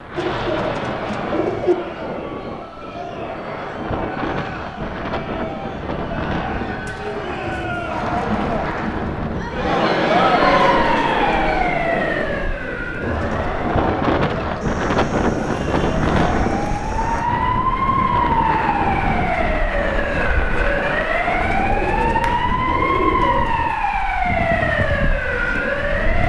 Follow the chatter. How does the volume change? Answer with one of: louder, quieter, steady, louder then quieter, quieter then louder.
louder then quieter.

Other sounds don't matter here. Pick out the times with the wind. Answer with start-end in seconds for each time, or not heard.
0.0-26.2.